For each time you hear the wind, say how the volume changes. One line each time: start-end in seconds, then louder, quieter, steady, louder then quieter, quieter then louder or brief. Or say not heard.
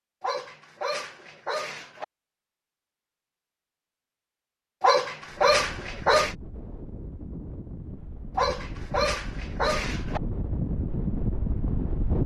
5.2-12.2 louder.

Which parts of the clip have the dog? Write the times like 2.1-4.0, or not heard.
0.2-2.0, 4.8-6.3, 8.3-10.2.